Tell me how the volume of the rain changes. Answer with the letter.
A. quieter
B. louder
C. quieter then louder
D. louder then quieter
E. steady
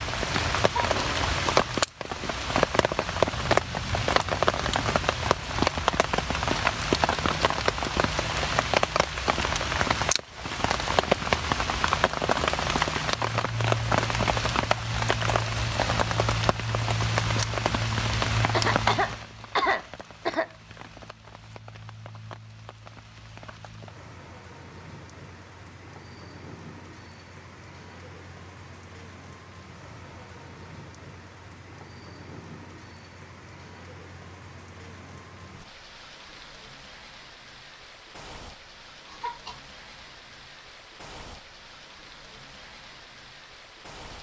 A.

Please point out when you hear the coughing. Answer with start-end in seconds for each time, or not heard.
0.6-1.0, 18.5-20.5, 39.0-39.6.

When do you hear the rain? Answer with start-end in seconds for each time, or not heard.
0.0-44.1.